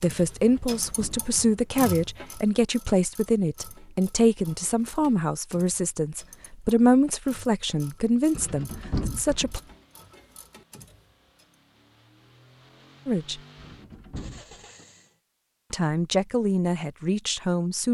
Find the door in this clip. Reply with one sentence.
The door can be heard from 0.4 to 1.4 s, from 8.3 to 9.8 s and from 13.6 to 14.6 s.